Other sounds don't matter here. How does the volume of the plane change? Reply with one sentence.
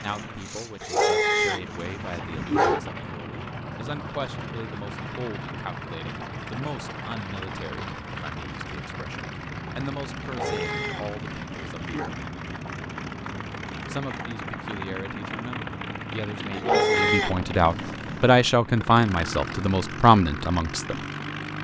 The loudness of the plane stays about the same.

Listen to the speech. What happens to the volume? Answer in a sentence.
The volume of the speech goes up.